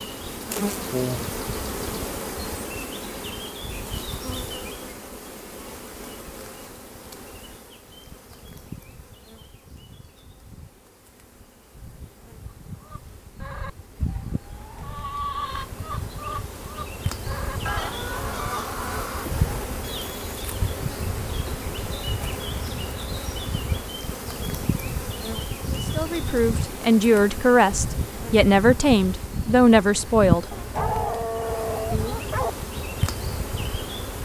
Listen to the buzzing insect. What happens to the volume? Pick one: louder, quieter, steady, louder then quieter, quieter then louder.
quieter then louder.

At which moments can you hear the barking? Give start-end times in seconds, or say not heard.
30.5-32.5.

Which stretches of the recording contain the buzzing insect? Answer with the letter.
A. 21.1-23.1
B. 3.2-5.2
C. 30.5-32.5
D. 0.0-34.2
D.